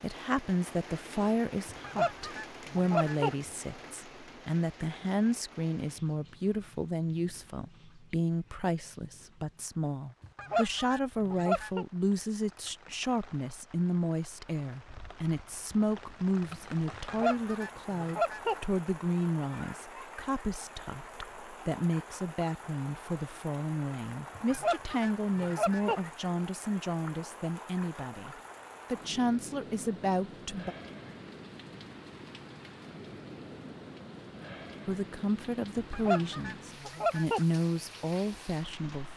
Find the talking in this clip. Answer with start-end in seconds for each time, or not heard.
0.0-30.8, 34.9-39.1.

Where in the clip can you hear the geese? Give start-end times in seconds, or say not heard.
1.6-3.4, 10.2-11.8, 16.9-18.6, 24.4-26.0, 35.8-37.5.